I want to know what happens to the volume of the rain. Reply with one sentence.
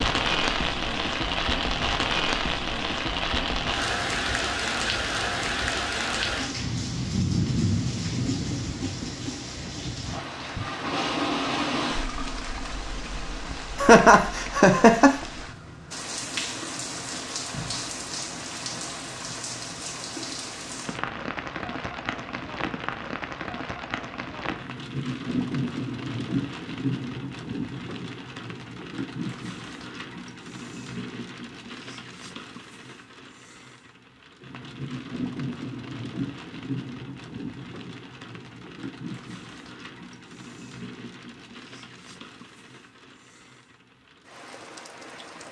The loudness of the rain goes down.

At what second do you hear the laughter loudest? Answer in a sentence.
The loudest moment of the laughter is at 14 seconds.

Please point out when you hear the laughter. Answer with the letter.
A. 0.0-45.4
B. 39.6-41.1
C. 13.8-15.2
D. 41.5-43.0
C.